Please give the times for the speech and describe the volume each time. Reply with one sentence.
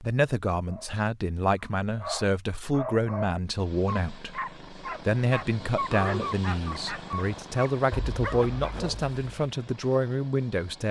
You can hear the speech from 0.0 to 10.8 s, at a steady volume.